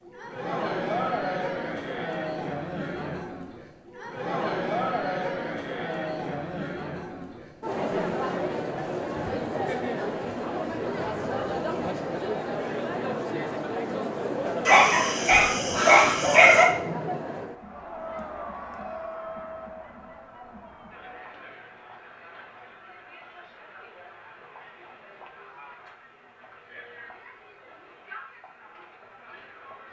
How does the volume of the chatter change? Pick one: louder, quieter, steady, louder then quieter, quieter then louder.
quieter.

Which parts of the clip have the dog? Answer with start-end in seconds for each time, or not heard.
14.7-16.6.